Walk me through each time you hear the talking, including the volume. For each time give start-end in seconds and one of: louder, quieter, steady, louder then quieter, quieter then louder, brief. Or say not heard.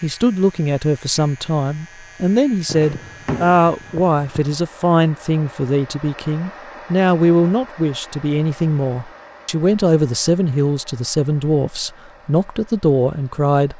0.0-13.7 steady.